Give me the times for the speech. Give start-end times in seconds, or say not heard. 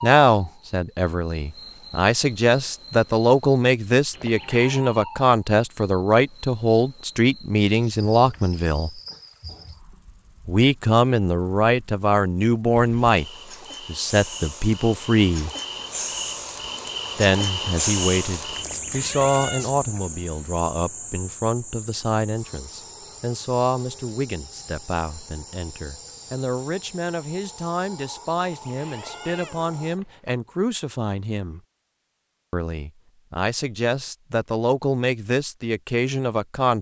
0.0-9.0, 10.4-15.5, 17.1-31.6, 32.5-36.7.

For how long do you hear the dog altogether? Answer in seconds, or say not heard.
not heard.